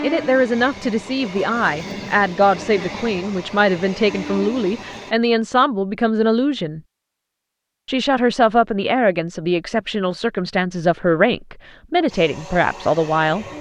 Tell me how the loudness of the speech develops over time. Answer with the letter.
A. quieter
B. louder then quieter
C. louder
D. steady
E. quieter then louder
D.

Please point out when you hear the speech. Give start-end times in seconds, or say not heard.
0.0-6.8, 7.8-13.4.